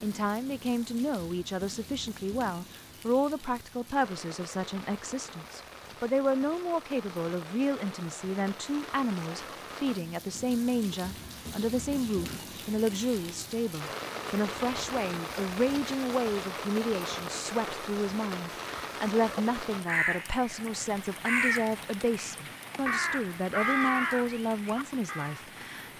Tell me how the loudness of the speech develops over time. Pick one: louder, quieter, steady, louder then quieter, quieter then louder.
steady.